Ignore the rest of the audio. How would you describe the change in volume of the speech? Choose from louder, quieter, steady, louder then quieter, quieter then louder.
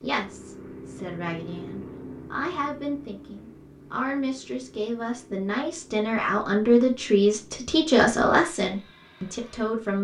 louder.